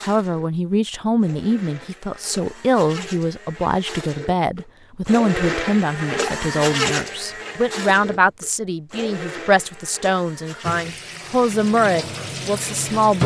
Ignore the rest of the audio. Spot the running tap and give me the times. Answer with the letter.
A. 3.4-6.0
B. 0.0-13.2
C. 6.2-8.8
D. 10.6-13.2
D.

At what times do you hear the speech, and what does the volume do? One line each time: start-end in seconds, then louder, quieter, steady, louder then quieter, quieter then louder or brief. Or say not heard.
0.0-13.2 steady.